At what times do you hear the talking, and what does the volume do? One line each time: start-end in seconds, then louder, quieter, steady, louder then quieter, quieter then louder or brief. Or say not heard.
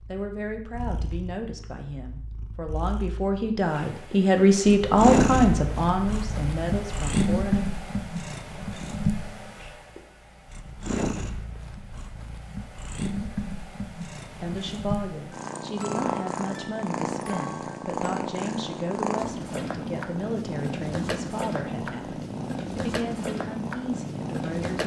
0.1-7.7 louder then quieter
14.4-24.8 steady.